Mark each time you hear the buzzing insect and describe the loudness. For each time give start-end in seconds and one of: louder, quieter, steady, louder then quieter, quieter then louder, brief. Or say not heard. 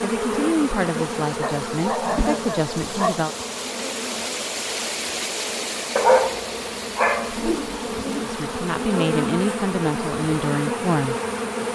0.0-11.7 quieter then louder.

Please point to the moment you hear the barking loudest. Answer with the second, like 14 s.
6 s.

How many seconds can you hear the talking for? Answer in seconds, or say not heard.
6 s.